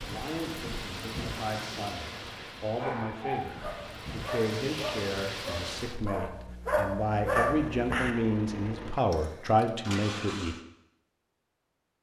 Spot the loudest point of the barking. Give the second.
7 s.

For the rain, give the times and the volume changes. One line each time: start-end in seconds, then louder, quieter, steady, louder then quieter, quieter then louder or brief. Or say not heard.
0.0-6.2 quieter then louder.